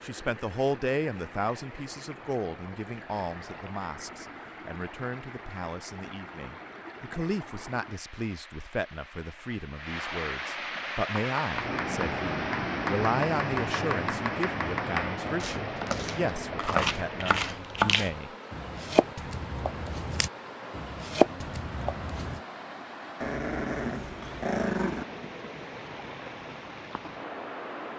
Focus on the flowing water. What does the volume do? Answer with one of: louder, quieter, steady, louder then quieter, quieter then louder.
louder then quieter.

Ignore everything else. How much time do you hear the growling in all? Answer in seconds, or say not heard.
2 s.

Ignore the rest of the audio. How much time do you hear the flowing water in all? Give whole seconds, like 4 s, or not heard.
28 s.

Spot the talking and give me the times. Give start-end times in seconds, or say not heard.
0.0-18.3.